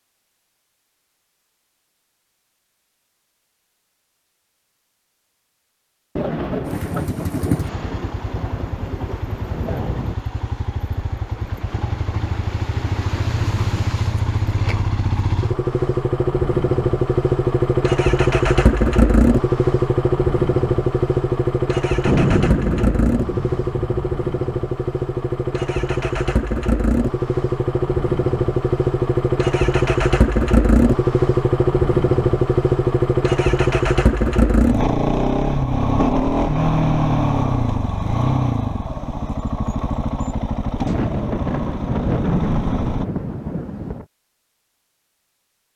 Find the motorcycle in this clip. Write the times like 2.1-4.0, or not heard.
6.6-43.0.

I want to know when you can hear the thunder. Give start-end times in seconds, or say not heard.
6.2-10.2, 22.1-23.9, 40.9-44.0.